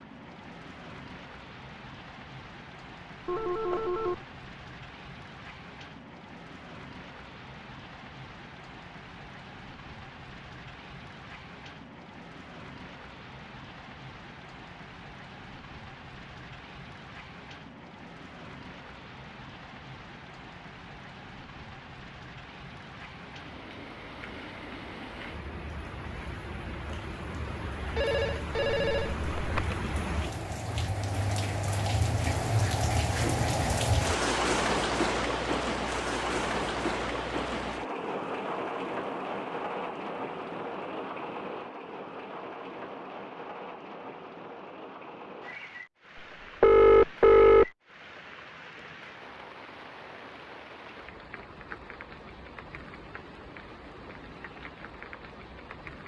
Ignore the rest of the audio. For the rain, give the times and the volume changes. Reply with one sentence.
You can hear the rain from 0.0 to 56.0 s, getting louder then quieter.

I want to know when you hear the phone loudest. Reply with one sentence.
The volume of the phone peaks at 47 seconds.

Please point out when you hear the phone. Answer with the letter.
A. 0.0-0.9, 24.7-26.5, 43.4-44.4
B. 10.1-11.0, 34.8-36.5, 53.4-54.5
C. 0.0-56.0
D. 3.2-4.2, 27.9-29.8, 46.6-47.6
D.